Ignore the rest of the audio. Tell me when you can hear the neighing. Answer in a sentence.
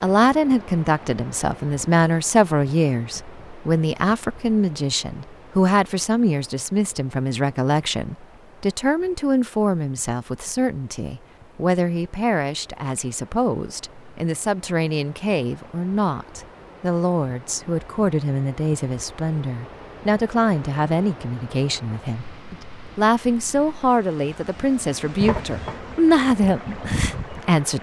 You can't hear the neighing here.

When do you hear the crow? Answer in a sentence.
You can't hear the crow here.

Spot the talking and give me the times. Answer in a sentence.
The talking can be heard from 0.0 to 27.7 s.